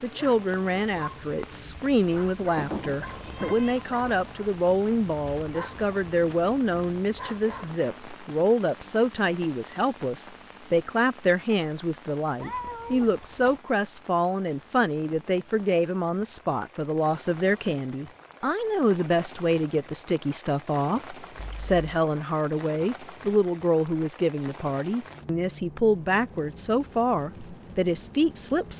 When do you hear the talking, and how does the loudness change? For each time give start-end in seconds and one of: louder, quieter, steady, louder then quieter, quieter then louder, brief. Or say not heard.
0.0-28.7 steady.